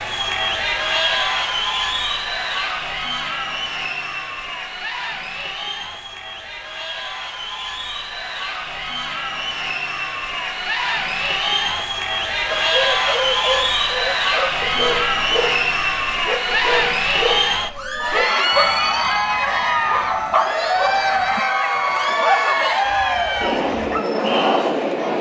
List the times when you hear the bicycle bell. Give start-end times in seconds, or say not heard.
not heard.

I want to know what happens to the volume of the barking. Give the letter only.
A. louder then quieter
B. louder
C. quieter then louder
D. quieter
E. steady
E.